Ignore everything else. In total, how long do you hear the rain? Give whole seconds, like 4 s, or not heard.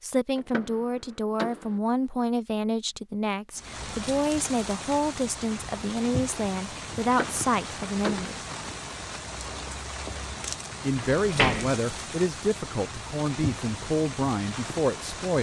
12 s.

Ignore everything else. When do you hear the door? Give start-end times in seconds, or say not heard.
0.3-1.8, 7.0-8.3, 10.9-11.8.